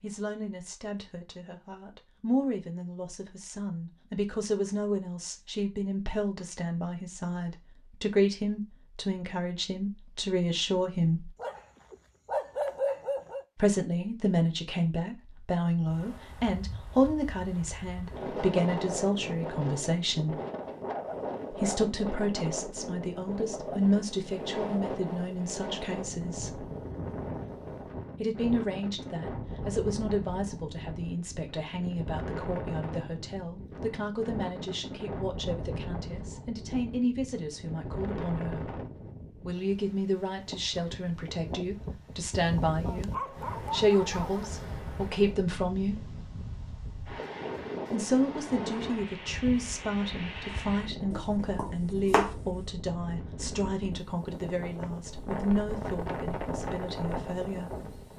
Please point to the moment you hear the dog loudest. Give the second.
13 s.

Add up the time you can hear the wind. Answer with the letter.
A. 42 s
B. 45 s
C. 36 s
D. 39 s
A.